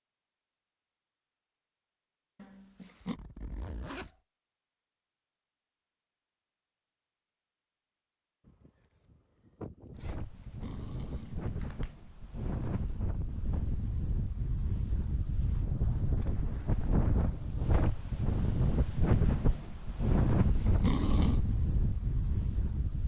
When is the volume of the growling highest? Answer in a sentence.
The loudest moment of the growling is at 21 seconds.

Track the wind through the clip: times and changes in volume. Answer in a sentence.
You can hear the wind from 9.9 to 23.0 s, getting louder.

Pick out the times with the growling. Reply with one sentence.
The growling can be heard from 2.4 to 3.2 s, from 10.2 to 11.9 s and from 20.1 to 21.4 s.